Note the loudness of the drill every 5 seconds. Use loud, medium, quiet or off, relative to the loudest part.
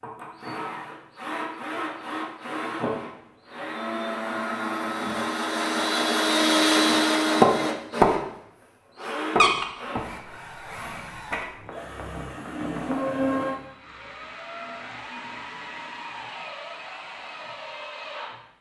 medium, loud, medium, quiet.